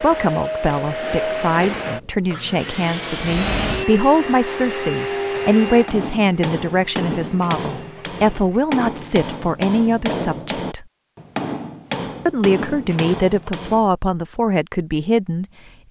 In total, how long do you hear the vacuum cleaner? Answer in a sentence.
You can hear the vacuum cleaner for 9 seconds altogether.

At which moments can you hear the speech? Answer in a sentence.
You can hear the speech from 0.0 to 10.8 s and from 12.2 to 15.8 s.